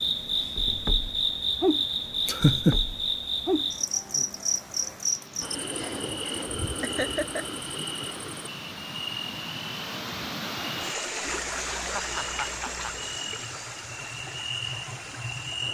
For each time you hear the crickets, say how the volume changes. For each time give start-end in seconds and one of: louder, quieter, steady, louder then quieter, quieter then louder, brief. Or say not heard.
0.0-15.6 quieter.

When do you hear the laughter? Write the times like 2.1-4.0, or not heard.
2.2-2.8, 6.8-7.5, 11.2-13.1.